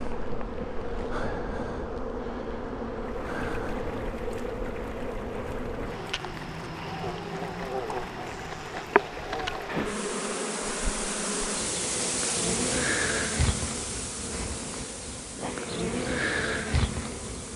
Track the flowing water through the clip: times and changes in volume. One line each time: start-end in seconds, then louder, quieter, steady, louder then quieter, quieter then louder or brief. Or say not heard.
3.0-17.5 louder then quieter.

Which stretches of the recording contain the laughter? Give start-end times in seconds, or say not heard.
not heard.